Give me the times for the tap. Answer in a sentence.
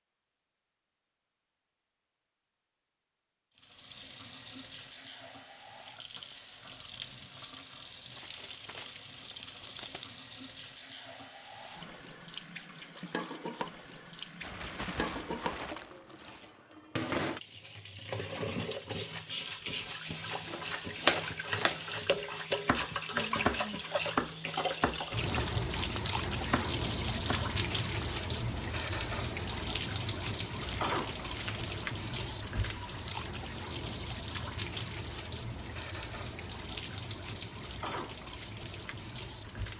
You can hear the tap from 3.5 to 39.7 s.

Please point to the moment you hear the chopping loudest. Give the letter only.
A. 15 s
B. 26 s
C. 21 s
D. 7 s
C.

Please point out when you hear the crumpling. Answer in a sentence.
The crumpling can be heard from 8.1 to 10.2 s, from 14.4 to 16.5 s and from 30.6 to 31.8 s.